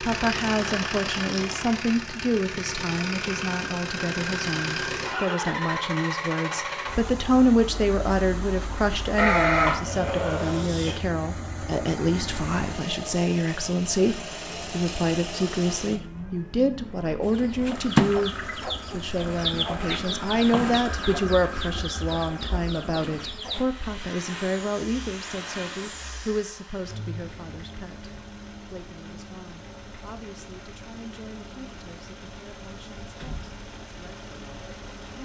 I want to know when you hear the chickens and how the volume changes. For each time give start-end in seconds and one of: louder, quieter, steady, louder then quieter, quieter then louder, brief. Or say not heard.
17.2-23.6 quieter.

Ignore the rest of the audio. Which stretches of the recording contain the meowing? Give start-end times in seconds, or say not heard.
not heard.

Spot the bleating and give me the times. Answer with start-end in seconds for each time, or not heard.
9.2-11.0.